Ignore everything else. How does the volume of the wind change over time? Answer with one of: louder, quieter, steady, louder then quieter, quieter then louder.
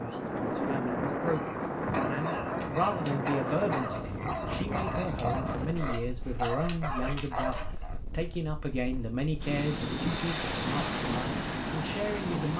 quieter then louder.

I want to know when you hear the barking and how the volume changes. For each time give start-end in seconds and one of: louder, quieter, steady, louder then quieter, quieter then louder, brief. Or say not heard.
1.2-8.0 steady.